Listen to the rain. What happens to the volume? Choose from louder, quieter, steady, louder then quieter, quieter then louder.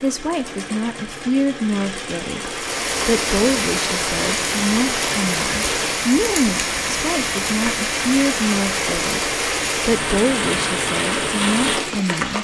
steady.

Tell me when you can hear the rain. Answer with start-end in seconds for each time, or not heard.
2.4-12.3.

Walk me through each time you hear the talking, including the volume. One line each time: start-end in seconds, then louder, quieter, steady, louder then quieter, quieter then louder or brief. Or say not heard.
0.0-12.3 steady.